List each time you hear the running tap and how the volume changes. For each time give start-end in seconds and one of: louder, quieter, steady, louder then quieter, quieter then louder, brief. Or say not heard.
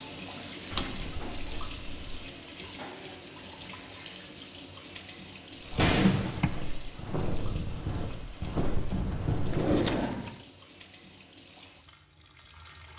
0.0-12.9 quieter.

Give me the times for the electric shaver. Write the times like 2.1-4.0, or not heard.
not heard.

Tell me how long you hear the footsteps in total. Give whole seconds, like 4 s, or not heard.
4 s.